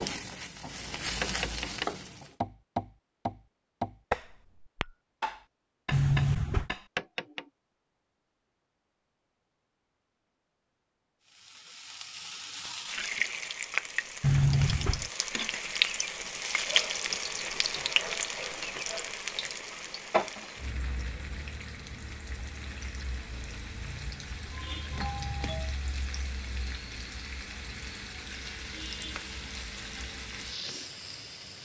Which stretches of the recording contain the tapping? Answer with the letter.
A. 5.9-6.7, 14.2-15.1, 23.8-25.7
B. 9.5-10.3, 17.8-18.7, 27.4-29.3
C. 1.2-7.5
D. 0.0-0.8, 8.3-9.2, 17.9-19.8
C.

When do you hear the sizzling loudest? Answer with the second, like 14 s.
16 s.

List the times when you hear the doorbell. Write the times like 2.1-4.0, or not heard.
5.9-6.7, 14.2-15.1, 23.8-25.7.